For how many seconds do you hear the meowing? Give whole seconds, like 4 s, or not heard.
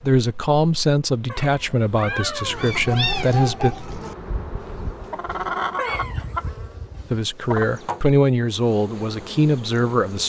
3 s.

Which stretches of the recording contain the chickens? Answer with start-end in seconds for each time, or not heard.
2.5-7.7.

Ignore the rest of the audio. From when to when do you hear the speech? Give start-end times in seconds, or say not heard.
0.0-3.8, 7.1-10.2.